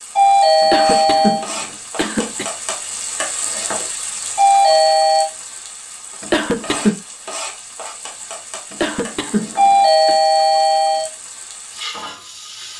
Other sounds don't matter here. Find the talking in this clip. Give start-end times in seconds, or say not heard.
not heard.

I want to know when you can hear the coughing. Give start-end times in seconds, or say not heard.
0.6-2.5, 6.2-7.0, 8.7-10.2.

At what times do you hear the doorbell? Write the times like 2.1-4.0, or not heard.
0.1-1.4, 4.3-5.3, 9.6-11.1.